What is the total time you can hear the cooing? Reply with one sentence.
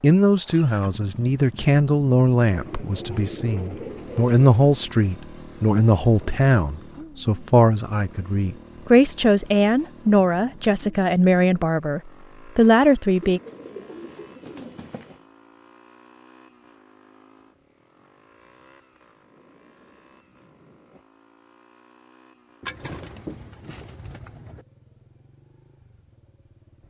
You can hear the cooing for 6 seconds altogether.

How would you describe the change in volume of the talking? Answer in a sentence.
The loudness of the talking stays about the same.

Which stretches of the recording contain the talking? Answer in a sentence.
You can hear the talking from 0.0 to 13.4 s.